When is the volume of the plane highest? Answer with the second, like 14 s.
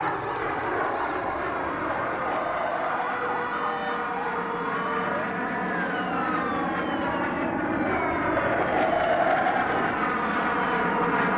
9 s.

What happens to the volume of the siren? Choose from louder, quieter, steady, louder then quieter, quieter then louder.
quieter.